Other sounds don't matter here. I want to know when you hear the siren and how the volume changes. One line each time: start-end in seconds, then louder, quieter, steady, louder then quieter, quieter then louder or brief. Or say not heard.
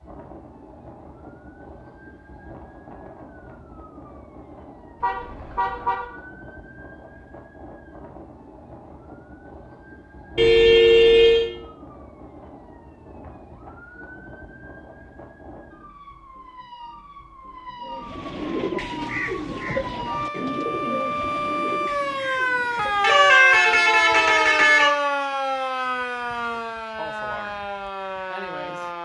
0.0-29.0 louder.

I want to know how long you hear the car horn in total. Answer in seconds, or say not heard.
4 s.